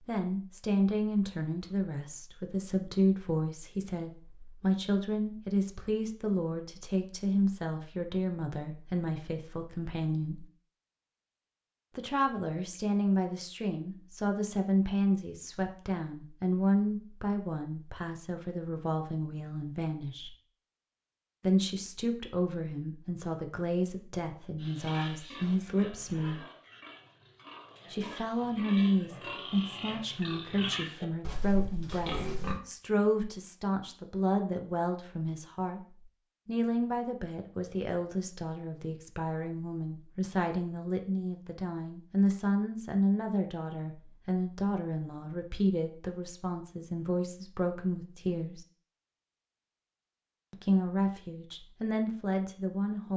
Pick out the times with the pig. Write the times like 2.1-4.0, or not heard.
24.6-32.6.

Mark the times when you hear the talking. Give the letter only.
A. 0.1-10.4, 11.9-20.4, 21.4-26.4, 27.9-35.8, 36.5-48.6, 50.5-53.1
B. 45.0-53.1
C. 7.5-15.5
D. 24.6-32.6
A.